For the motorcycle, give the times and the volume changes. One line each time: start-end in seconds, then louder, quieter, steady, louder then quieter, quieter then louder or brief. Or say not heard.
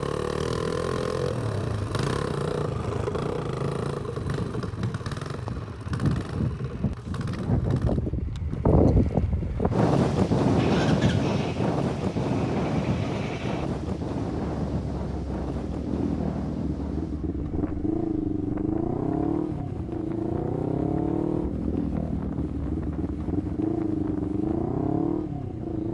0.0-25.8 quieter then louder.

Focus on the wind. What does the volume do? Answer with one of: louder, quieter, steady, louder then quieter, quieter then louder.
louder then quieter.